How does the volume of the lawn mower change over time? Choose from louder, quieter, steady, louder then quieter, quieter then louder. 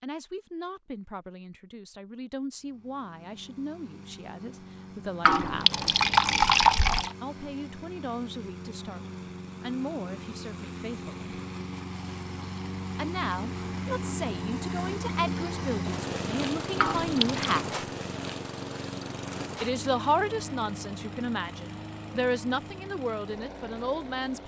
louder then quieter.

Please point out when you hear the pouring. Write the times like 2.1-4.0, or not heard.
5.2-7.2, 16.8-17.6.